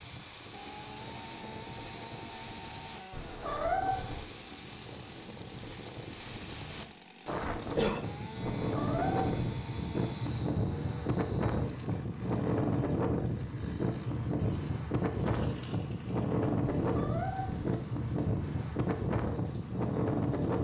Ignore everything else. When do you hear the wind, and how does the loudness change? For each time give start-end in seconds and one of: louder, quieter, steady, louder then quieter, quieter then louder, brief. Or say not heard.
0.0-20.5 louder.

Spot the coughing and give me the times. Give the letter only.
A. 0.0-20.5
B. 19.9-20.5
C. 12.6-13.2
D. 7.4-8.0
D.